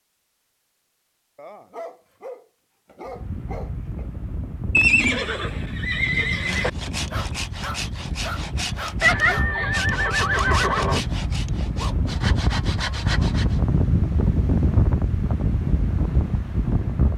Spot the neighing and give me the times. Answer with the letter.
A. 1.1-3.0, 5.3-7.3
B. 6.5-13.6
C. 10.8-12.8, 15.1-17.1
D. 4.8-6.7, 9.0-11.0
D.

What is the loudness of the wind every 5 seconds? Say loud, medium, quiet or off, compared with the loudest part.
medium, medium, loud, loud.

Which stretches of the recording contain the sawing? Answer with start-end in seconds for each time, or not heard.
6.5-13.6.